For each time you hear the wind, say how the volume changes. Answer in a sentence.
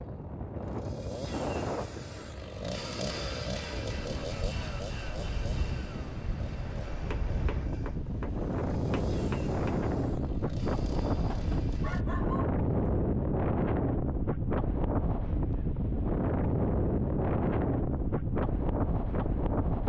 The wind can be heard from 0.0 to 19.8 s, getting louder.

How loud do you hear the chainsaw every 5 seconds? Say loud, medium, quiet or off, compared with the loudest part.
loud, medium, medium, off.